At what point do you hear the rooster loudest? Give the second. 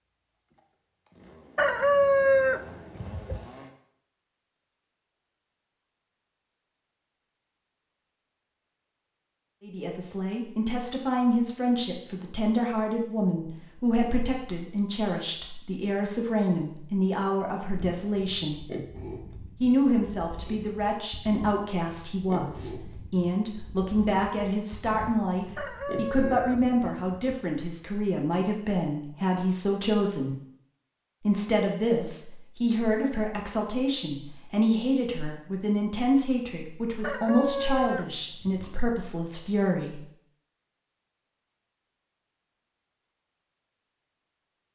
2 s.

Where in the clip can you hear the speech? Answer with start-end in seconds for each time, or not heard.
9.6-18.6, 19.6-30.4, 31.2-40.0.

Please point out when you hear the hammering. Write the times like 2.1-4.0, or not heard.
not heard.